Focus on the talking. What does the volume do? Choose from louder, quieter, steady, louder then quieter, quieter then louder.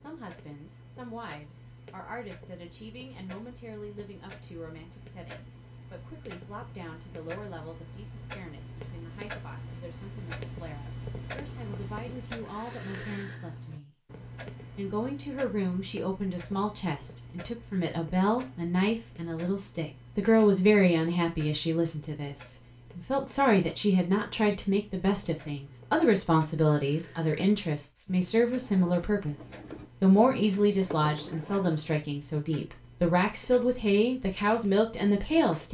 louder.